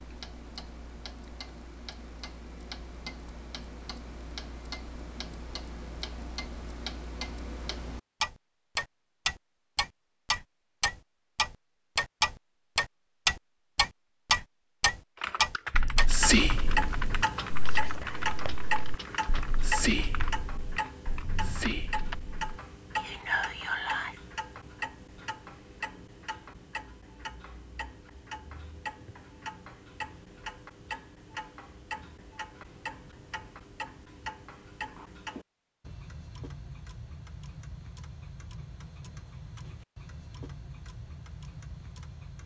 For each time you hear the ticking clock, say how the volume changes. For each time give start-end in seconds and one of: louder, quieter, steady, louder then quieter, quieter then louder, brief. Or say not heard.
0.0-42.4 louder then quieter.